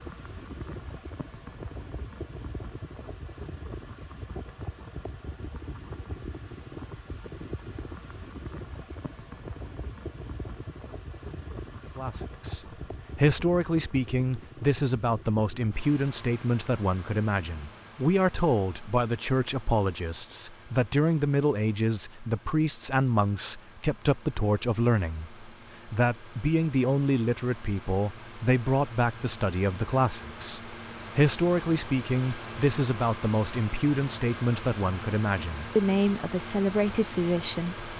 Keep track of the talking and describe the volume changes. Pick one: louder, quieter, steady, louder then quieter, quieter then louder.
steady.